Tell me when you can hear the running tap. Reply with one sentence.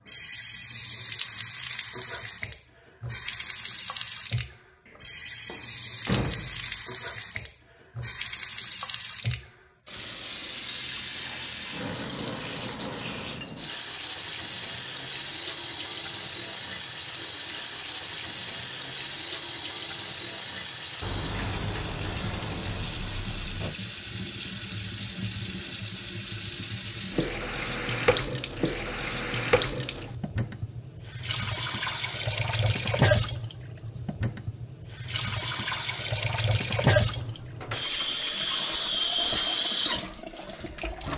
The running tap can be heard from 0.0 to 41.1 s.